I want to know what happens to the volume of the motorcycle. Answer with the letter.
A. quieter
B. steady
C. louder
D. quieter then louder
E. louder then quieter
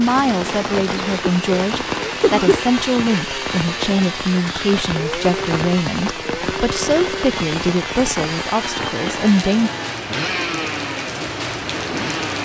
B.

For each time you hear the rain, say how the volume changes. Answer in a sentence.
You can hear the rain from 0.0 to 12.4 s, at a steady volume.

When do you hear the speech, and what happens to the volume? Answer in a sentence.
You can hear the speech from 0.0 to 9.7 s, at a steady volume.